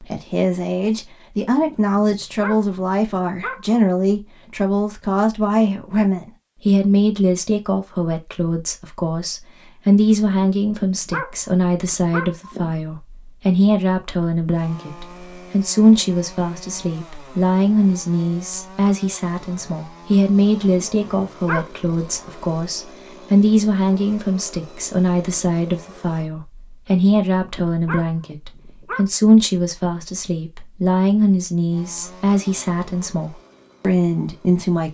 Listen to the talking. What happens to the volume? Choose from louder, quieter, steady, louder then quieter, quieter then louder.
steady.